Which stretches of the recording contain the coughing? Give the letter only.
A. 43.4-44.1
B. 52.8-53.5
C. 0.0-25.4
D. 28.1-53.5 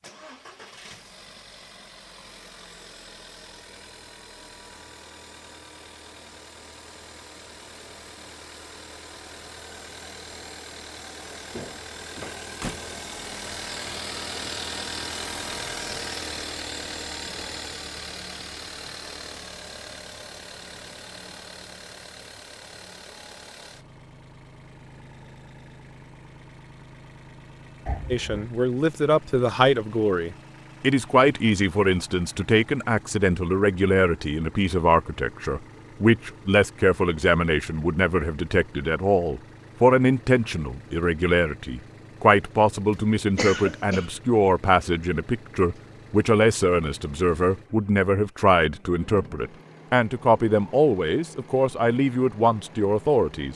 A.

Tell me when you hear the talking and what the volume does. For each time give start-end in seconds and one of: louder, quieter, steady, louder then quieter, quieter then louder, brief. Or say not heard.
28.1-53.5 steady.